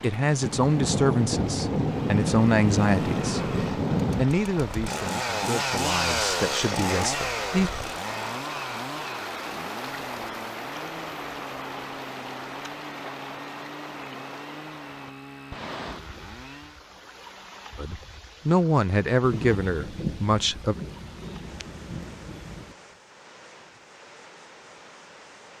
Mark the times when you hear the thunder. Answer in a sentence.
You can hear the thunder from 0.4 to 4.2 s and from 19.2 to 22.8 s.